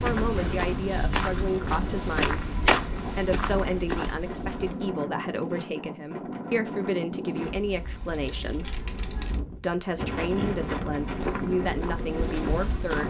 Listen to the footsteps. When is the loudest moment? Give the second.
3 s.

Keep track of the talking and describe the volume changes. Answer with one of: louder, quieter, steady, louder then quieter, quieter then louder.
steady.